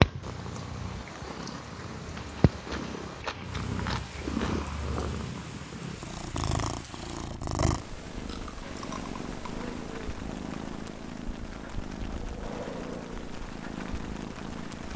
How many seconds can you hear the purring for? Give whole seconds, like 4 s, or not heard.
15 s.